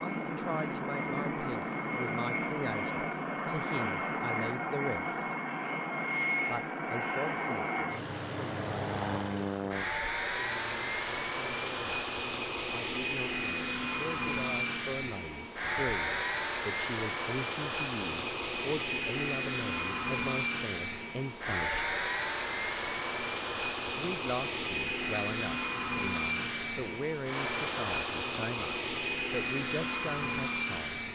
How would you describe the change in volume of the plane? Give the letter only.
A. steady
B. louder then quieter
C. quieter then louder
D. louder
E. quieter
A.